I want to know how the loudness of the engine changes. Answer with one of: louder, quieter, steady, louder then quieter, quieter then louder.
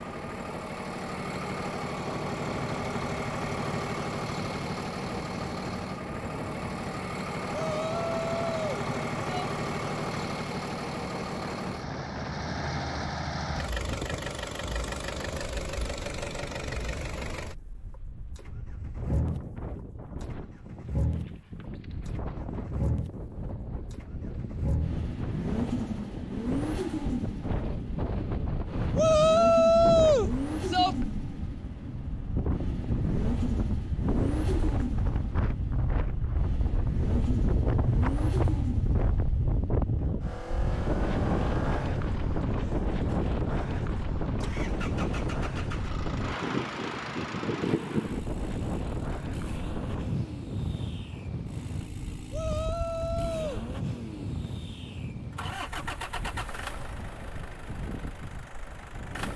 quieter.